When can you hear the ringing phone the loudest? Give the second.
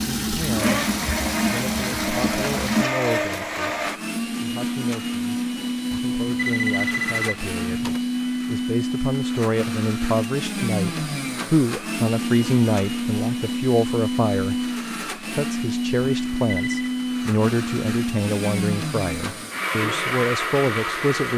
7 s.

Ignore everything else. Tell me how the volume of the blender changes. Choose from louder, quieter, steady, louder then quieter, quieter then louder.
steady.